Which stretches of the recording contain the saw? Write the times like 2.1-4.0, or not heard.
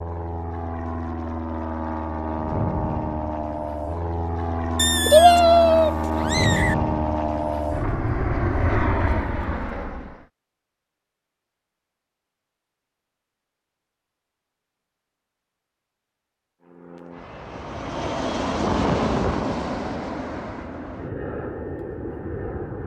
not heard.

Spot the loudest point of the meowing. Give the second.
5 s.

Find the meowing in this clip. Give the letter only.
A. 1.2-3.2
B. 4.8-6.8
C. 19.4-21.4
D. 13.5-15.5
B.